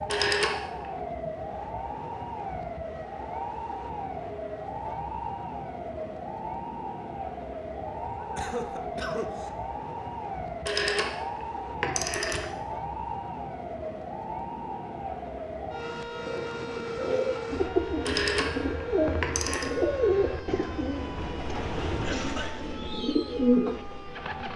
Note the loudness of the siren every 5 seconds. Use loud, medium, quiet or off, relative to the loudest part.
loud, loud, loud, loud, medium.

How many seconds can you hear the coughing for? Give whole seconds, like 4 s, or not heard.
2 s.